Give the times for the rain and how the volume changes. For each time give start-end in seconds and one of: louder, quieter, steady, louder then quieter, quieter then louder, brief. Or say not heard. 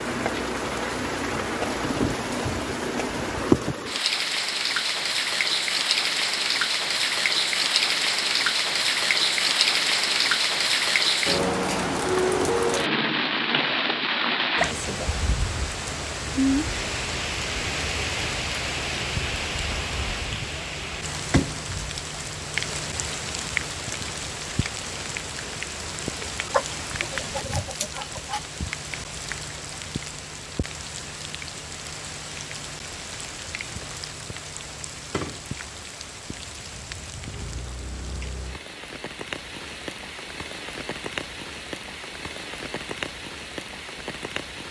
0.0-44.6 quieter.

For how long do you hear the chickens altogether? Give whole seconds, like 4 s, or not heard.
2 s.